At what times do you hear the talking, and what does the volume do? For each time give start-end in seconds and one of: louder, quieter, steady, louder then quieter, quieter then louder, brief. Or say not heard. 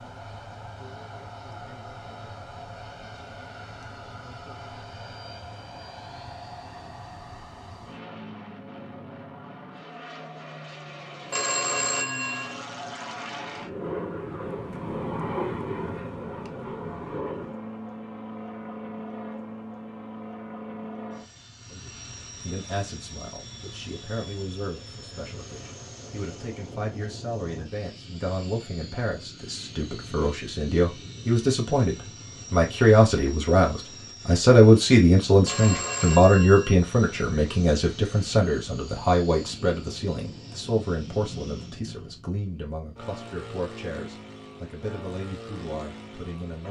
21.7-46.6 louder then quieter.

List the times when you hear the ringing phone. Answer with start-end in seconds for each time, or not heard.
11.3-12.6, 35.5-36.8.